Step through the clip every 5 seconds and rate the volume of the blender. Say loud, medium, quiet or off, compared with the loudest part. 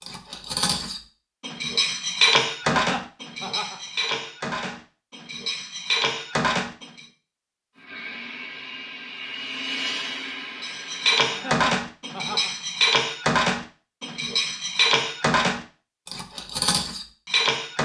off, loud, loud, off.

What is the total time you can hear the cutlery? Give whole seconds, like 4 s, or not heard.
14 s.